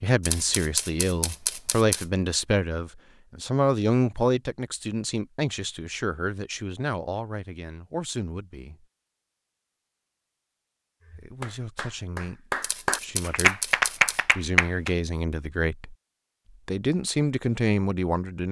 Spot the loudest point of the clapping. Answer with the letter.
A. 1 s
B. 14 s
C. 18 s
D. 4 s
B.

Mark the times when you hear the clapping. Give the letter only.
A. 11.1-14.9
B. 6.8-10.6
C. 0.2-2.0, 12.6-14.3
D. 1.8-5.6
A.